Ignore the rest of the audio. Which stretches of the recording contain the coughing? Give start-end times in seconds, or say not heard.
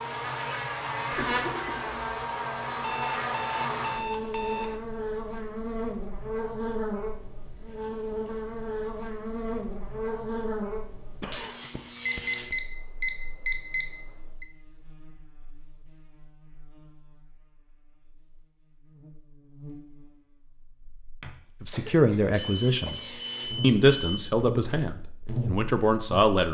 1.1-2.0, 11.2-12.6, 21.2-22.9.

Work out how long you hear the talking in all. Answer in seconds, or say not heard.
5 s.